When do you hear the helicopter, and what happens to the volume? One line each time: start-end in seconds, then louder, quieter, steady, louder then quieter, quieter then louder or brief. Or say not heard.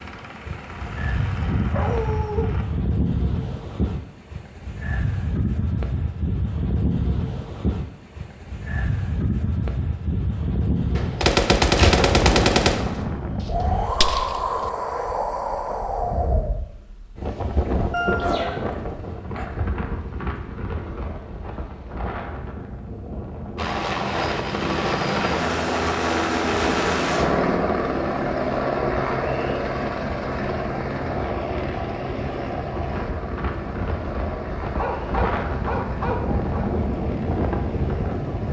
0.0-2.6 brief
23.6-38.4 quieter.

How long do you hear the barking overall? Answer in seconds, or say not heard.
4 s.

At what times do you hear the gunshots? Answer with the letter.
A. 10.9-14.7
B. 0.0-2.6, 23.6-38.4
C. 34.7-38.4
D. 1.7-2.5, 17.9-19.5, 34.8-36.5
A.